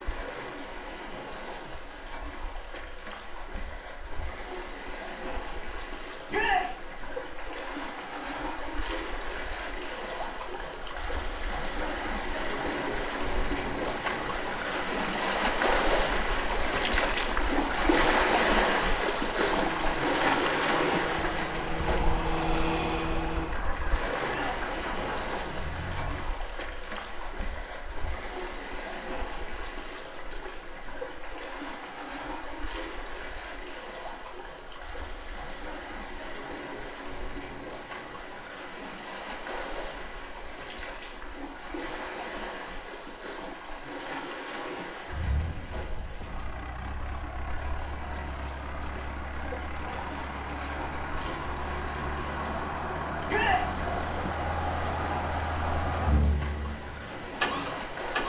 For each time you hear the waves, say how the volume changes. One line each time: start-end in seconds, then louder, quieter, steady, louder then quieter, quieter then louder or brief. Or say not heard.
0.0-58.2 louder then quieter.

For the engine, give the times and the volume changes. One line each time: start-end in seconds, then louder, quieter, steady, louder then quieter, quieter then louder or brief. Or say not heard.
19.5-26.3 louder then quieter
45.0-58.2 louder.